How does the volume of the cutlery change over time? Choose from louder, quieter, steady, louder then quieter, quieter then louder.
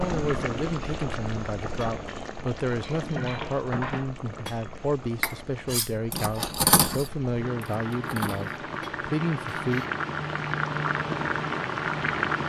louder then quieter.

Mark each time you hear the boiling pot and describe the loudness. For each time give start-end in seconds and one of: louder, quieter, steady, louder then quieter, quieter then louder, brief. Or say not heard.
0.0-12.4 quieter then louder.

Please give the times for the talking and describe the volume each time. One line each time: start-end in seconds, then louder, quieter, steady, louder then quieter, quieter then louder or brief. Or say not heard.
0.0-9.8 steady.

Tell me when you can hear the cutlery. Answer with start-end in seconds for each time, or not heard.
1.8-9.9.